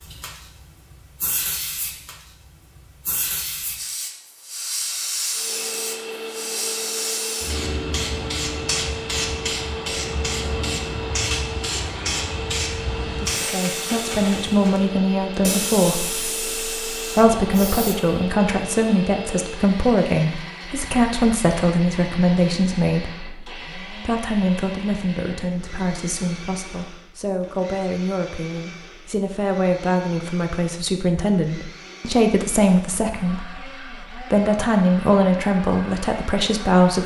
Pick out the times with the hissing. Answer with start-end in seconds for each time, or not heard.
0.0-17.9.